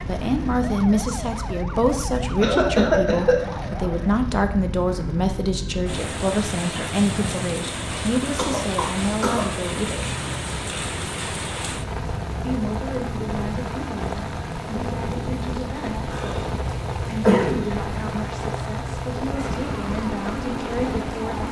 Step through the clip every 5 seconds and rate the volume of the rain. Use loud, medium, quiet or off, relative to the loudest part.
medium, loud, loud, loud, loud.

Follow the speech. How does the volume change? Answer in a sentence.
The volume of the speech goes down.